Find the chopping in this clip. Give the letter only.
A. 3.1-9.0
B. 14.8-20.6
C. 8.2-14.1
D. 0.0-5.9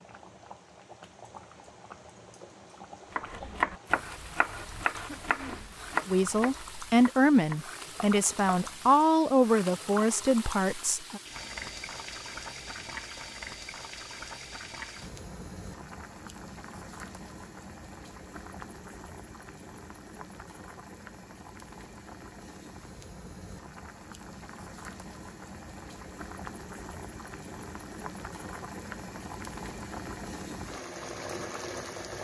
A.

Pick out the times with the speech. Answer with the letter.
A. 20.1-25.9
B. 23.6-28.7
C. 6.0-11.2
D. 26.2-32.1
C.